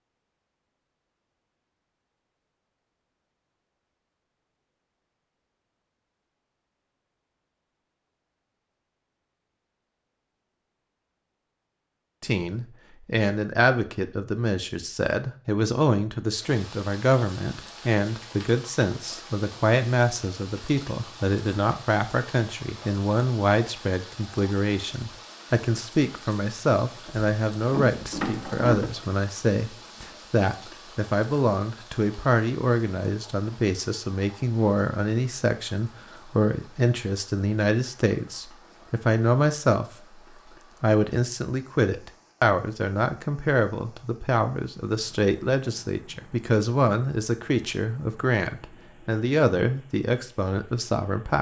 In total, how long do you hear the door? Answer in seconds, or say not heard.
2 s.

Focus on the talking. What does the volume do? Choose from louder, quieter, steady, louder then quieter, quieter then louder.
steady.